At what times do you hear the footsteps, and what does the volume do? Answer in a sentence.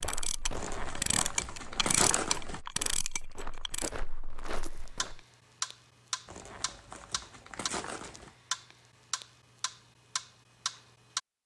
The footsteps can be heard from 0.0 to 5.2 s, getting quieter then louder.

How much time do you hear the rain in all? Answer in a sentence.
The rain can't be heard in this clip.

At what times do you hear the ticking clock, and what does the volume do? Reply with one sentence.
The ticking clock can be heard from 0.0 to 11.2 s, getting quieter.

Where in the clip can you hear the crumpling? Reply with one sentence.
You can hear the crumpling from 0.6 to 2.6 s and from 6.2 to 8.3 s.